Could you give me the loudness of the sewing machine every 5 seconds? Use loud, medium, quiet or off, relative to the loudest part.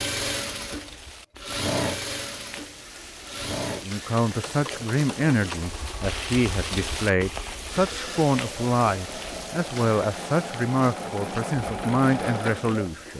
loud, medium, loud.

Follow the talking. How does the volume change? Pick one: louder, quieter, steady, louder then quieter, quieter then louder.
steady.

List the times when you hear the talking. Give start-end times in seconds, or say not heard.
3.7-13.1.